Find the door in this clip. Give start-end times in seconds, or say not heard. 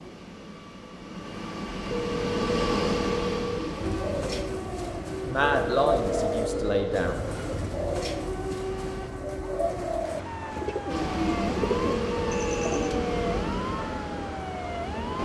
not heard.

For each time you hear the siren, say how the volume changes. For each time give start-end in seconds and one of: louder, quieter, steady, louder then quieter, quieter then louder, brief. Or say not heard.
3.8-15.2 steady.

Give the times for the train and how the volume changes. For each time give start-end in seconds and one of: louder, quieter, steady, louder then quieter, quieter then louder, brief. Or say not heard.
0.0-9.1 louder then quieter
10.8-15.2 quieter.